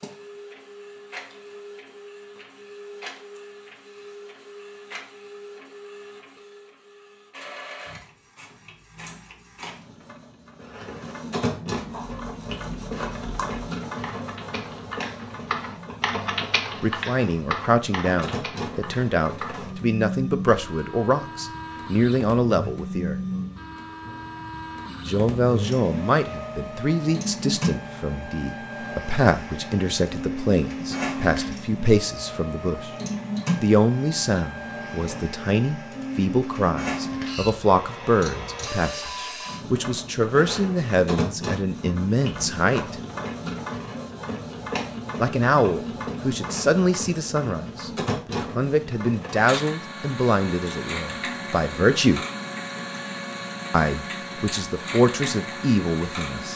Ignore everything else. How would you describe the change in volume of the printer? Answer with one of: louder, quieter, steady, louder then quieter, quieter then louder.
louder.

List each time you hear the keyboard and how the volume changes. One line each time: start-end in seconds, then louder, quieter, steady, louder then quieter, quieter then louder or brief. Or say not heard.
11.8-19.7 louder then quieter.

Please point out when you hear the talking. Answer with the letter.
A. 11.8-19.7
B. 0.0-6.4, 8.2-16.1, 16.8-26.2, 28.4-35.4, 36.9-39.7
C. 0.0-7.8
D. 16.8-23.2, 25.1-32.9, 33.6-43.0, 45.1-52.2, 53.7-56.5
D.